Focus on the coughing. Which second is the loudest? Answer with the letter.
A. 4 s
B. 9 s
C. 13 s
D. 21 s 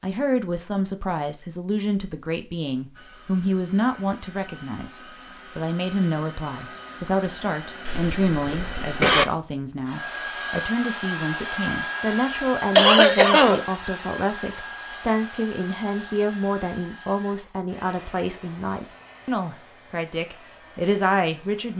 C.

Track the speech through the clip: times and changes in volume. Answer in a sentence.
The speech can be heard from 0.0 to 21.7 s, at a steady volume.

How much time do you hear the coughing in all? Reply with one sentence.
The coughing can be heard for 2 seconds in total.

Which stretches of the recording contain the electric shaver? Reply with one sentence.
You can't hear the electric shaver here.